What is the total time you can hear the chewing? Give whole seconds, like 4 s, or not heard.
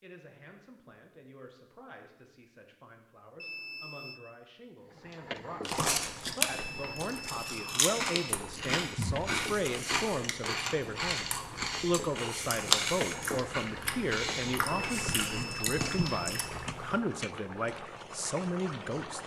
11 s.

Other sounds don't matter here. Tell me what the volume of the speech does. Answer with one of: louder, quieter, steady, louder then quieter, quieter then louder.
louder.